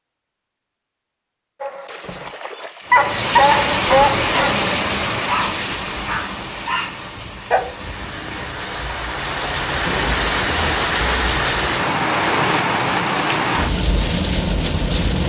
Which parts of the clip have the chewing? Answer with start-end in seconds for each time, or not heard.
not heard.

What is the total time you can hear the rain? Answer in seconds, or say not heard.
12 s.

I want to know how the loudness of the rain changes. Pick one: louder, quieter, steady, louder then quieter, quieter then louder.
quieter then louder.